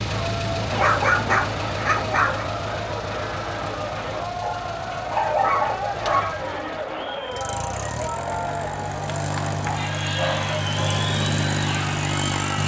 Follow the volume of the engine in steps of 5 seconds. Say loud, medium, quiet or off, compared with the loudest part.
medium, medium, loud.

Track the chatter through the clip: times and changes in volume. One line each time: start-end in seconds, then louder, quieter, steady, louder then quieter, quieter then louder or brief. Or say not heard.
0.0-12.6 steady.